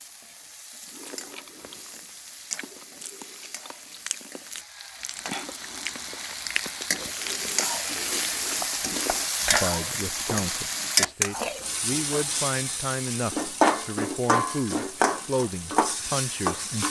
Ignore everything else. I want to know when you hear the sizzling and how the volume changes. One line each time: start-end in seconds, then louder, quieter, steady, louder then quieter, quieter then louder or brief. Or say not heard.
0.0-16.8 louder.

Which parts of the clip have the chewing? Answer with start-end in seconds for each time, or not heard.
0.8-9.2.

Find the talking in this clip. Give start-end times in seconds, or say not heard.
9.5-16.8.